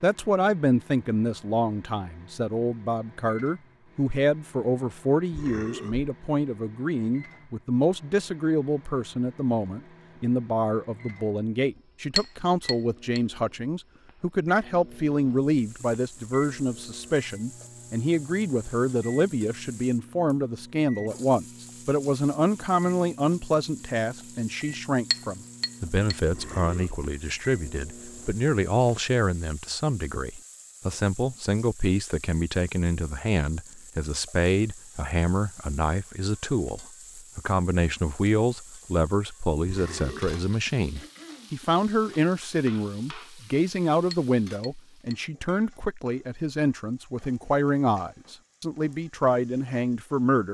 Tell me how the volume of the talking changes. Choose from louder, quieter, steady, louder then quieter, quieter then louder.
steady.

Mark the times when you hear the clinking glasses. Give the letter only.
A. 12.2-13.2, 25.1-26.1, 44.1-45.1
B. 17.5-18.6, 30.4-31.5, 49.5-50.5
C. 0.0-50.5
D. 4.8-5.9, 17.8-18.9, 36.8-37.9
A.